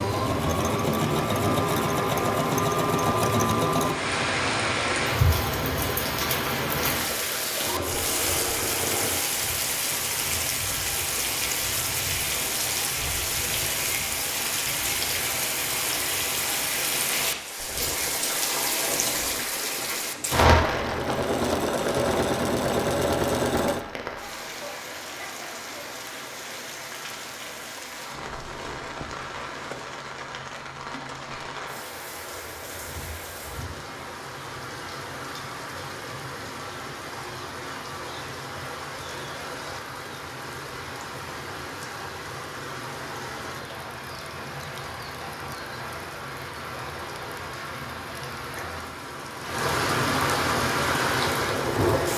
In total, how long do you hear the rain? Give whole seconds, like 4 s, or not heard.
52 s.